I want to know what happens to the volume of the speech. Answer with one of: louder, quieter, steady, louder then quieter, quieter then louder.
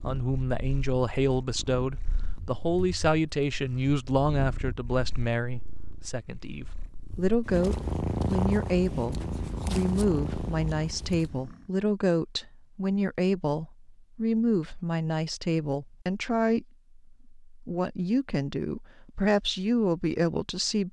steady.